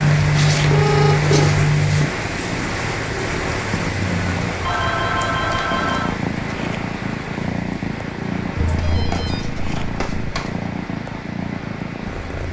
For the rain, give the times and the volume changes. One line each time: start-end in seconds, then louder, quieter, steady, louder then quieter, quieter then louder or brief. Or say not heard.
0.0-12.4 quieter.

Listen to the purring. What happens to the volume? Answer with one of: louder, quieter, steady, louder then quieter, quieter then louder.
steady.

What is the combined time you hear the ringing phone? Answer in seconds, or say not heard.
3 s.